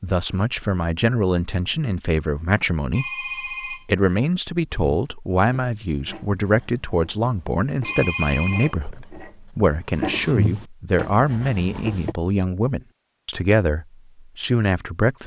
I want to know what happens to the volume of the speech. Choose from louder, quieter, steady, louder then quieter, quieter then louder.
steady.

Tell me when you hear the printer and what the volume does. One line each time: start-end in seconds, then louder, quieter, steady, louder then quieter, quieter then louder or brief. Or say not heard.
not heard.